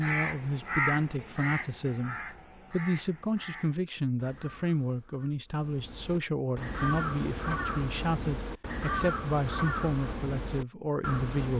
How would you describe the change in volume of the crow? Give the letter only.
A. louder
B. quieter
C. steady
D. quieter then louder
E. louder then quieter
D.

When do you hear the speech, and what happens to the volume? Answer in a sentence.
You can hear the speech from 0.0 to 11.5 s, at a steady volume.